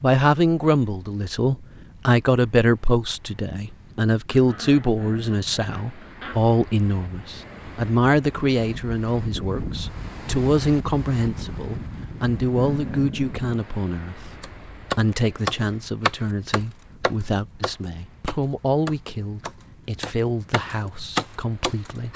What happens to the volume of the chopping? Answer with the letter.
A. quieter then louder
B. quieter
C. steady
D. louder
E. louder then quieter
A.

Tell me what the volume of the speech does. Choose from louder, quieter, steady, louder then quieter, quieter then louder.
quieter.